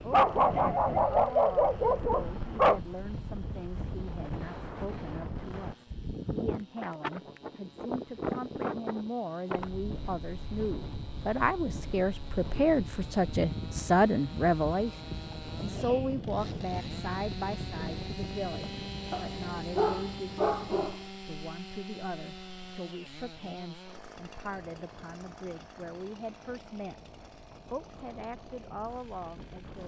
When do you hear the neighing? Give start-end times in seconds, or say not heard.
not heard.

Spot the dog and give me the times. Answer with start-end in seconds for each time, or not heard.
0.1-2.8, 19.1-20.9.